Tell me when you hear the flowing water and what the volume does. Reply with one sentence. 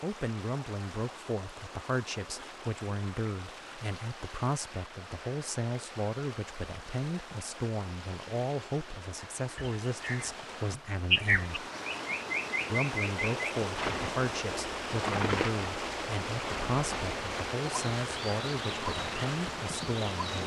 You can hear the flowing water from 0.0 to 20.4 s, getting louder.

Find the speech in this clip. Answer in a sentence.
You can hear the speech from 0.0 to 11.7 s and from 12.7 to 20.4 s.